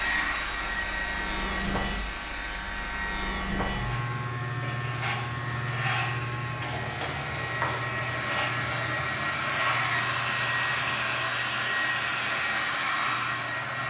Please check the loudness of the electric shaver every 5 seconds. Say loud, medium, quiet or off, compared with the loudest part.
loud, loud, medium.